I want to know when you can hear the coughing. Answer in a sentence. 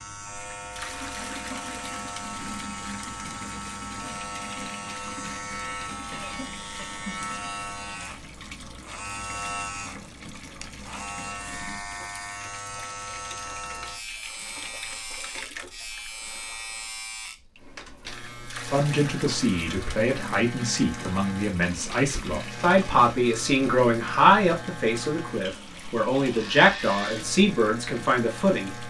You can hear the coughing from 6.1 to 7.2 s.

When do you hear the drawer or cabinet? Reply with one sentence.
You can't hear the drawer or cabinet here.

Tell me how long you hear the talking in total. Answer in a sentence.
The talking can be heard for 10 seconds in total.